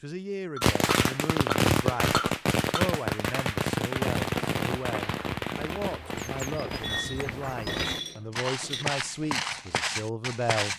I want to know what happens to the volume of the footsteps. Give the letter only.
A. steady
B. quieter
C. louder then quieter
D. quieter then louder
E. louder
E.